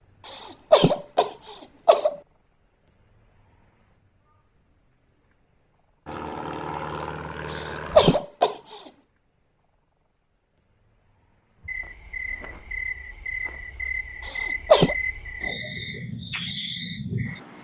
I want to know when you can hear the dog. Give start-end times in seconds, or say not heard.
not heard.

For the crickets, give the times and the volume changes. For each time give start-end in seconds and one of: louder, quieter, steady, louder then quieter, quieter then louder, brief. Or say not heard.
0.0-17.6 quieter then louder.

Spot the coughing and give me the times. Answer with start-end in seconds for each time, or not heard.
0.2-2.1, 7.5-8.6, 14.2-14.9.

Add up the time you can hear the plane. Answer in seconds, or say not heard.
2 s.